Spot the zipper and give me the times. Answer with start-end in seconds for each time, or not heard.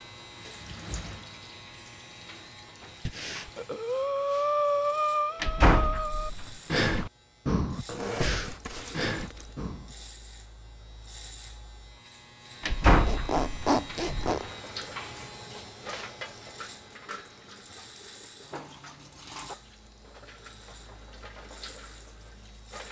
7.8-9.6, 13.1-14.4.